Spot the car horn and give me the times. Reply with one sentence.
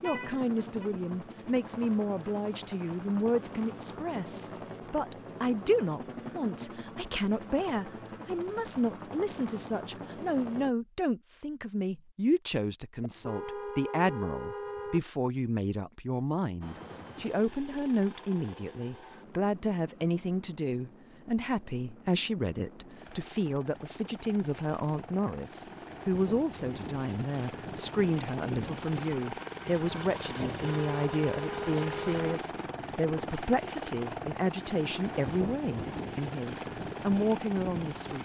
The car horn can be heard from 0.0 to 0.8 s, from 13.0 to 15.0 s and from 30.6 to 32.4 s.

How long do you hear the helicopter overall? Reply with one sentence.
You can hear the helicopter for 32 seconds altogether.